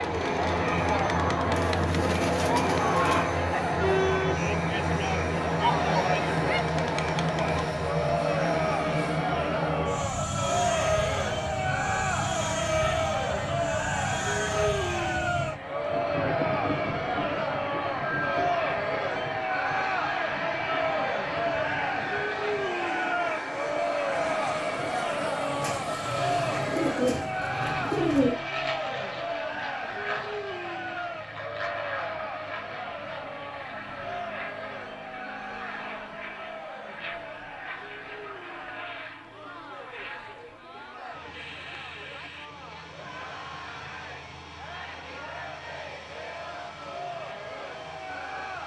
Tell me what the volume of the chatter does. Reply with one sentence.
The loudness of the chatter goes down.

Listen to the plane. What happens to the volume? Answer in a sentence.
The volume of the plane goes down.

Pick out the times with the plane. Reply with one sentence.
You can hear the plane from 0.0 to 48.6 s.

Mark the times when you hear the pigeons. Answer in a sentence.
You can hear the pigeons from 1.5 to 3.2 s and from 25.6 to 28.4 s.